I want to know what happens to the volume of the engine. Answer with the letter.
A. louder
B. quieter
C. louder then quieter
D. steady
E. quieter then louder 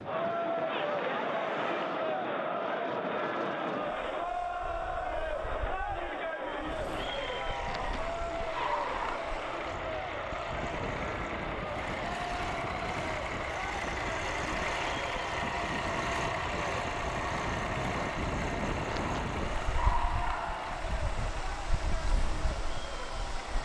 C.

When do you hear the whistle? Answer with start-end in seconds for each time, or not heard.
not heard.